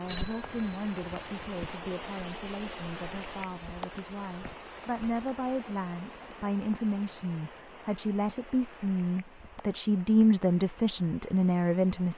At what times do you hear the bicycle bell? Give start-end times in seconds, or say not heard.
0.1-1.1.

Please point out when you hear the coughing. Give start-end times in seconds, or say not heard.
not heard.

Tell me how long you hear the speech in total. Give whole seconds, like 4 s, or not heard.
12 s.